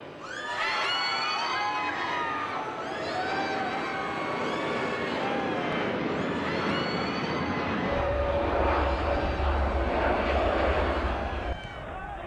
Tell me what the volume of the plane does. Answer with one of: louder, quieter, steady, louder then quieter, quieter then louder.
louder.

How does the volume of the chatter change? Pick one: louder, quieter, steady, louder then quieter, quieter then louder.
quieter.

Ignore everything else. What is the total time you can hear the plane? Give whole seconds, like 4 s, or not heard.
12 s.